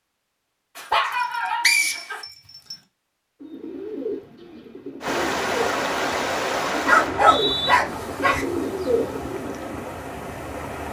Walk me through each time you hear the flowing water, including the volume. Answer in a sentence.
You can hear the flowing water from 5.0 to 10.8 s, getting quieter.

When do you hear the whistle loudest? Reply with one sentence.
The loudest moment of the whistle is at 2 seconds.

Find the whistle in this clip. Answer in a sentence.
The whistle can be heard from 1.6 to 2.8 s and from 7.0 to 7.8 s.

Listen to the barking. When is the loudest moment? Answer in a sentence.
The loudest moment of the barking is at 7 seconds.